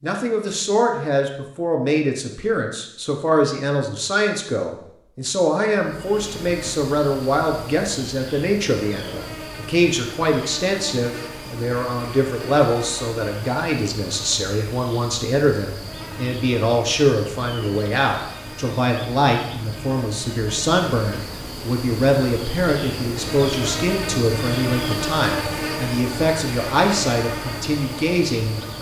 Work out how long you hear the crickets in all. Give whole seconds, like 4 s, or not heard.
23 s.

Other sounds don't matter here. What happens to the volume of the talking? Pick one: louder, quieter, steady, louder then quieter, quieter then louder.
steady.